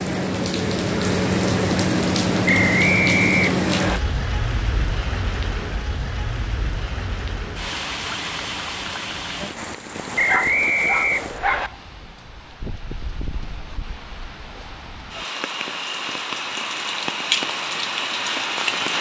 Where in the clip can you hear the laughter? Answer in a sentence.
You can't hear the laughter here.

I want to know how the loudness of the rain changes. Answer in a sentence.
The loudness of the rain goes down, then up.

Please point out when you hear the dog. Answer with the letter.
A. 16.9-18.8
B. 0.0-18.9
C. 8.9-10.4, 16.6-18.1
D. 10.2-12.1
D.